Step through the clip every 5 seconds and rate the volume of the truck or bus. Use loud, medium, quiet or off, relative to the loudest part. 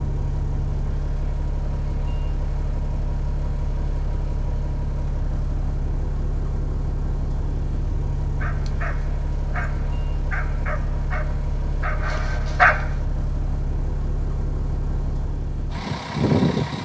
medium, medium, medium, loud.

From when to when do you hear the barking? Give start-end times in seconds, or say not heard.
8.4-12.8.